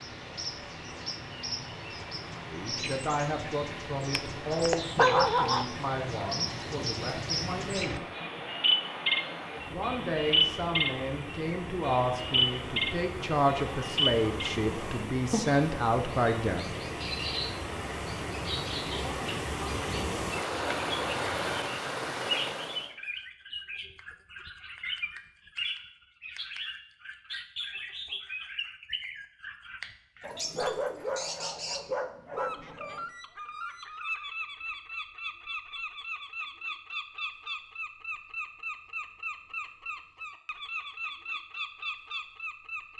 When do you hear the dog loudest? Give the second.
5 s.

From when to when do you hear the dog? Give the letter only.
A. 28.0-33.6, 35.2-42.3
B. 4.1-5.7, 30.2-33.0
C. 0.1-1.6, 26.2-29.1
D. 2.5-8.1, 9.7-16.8
B.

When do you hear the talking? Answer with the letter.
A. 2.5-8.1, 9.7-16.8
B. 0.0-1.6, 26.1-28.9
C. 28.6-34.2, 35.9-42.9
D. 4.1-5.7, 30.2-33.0
A.